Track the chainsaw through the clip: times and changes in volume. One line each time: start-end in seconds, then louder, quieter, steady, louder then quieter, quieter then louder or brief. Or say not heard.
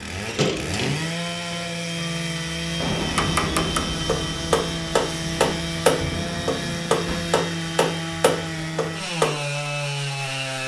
0.0-10.6 steady.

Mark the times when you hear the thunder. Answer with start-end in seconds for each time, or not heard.
2.8-7.0.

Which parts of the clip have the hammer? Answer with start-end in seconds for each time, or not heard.
3.1-9.3.